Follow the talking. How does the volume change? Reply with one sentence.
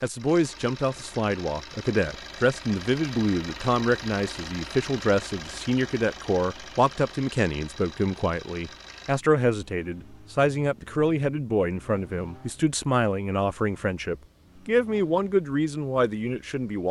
The volume of the talking stays about the same.